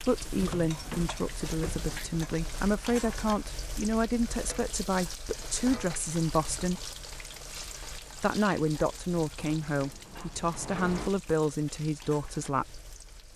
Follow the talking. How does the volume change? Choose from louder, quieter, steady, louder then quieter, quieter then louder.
steady.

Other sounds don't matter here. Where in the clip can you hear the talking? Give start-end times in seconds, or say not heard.
0.1-6.8, 8.2-12.8.